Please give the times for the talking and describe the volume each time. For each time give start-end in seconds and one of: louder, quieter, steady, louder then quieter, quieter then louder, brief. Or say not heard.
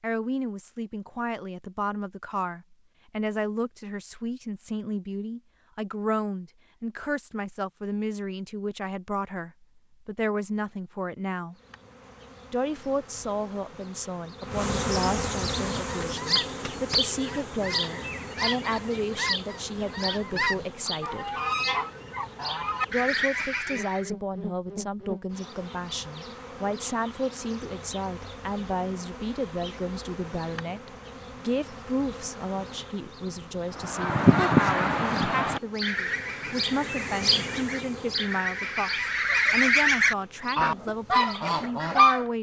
0.0-11.6 steady
12.5-21.3 steady
22.9-42.3 steady.